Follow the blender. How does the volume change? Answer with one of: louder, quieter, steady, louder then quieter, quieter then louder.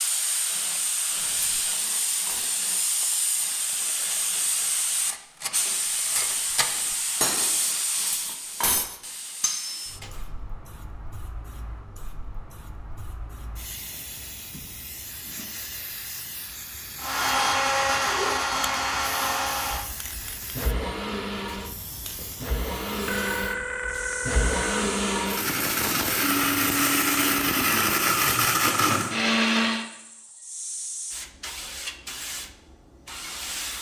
quieter then louder.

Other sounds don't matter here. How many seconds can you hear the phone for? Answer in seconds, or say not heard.
2 s.